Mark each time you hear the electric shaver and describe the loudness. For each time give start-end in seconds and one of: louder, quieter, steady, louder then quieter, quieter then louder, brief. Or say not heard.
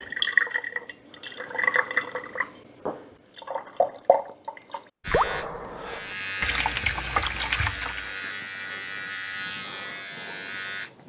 5.0-11.0 steady.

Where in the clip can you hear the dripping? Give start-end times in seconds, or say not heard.
0.0-8.1.